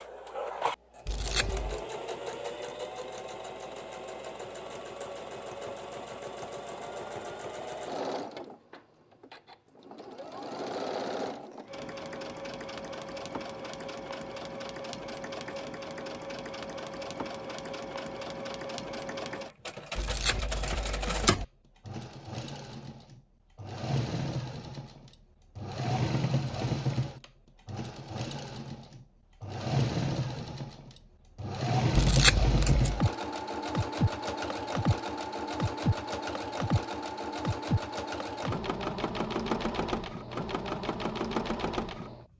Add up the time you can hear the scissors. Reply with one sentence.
You can hear the scissors for 3 seconds altogether.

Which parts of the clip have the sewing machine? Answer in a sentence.
You can hear the sewing machine from 0.0 to 42.2 s.